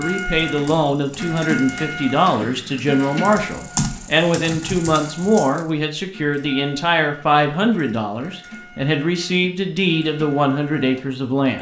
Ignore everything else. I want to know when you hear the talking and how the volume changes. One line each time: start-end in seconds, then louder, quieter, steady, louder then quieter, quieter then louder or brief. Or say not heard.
0.0-11.5 steady.